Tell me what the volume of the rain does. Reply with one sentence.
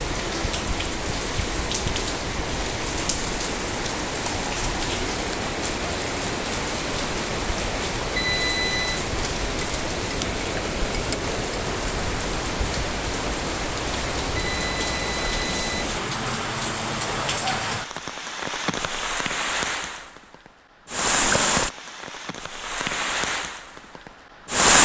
The loudness of the rain stays about the same.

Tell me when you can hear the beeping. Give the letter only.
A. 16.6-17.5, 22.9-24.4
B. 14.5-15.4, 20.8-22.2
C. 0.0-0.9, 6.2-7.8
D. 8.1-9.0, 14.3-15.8
D.